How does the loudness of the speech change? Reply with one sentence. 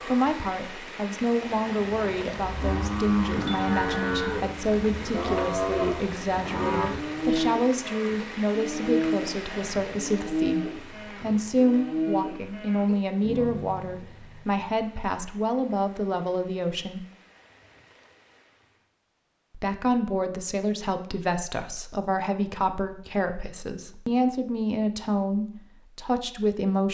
The volume of the speech stays about the same.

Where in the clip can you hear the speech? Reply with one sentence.
You can hear the speech from 0.1 to 17.1 s and from 19.6 to 26.8 s.